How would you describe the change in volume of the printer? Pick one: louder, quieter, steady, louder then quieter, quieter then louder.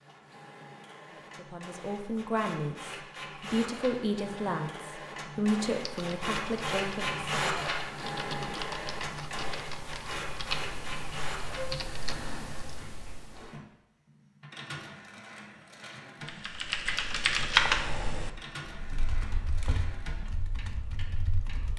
louder then quieter.